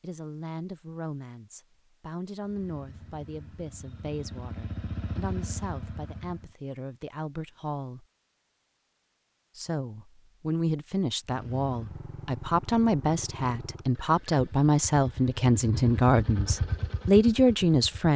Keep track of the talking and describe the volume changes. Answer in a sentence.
The volume of the talking goes up.